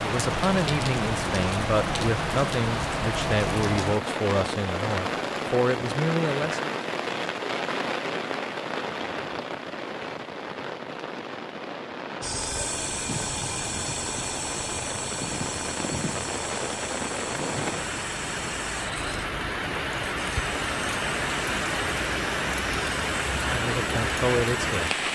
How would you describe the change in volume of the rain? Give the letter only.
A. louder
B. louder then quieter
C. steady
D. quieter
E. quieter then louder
E.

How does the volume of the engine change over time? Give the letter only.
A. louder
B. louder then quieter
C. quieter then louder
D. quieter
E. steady
D.